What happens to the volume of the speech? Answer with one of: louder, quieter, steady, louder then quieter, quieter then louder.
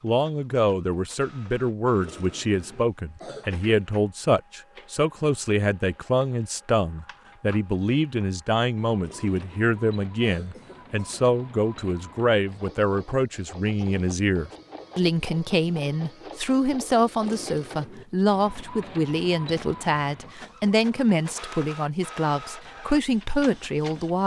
steady.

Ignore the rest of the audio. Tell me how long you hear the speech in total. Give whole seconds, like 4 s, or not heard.
24 s.